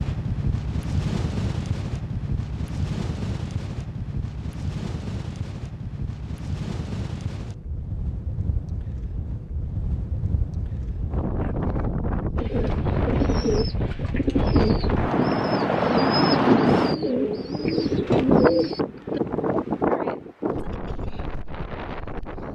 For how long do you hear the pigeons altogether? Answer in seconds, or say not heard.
7 s.